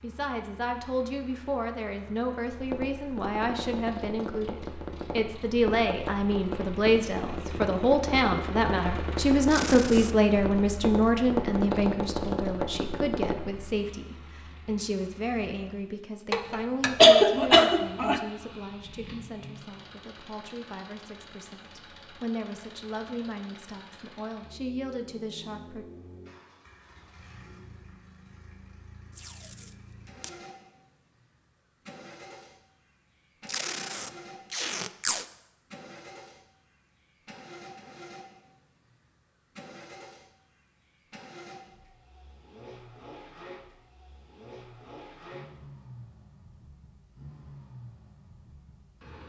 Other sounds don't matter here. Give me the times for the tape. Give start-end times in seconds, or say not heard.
9.4-10.2, 29.1-30.3, 33.5-35.2.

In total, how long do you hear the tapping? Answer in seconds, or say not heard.
11 s.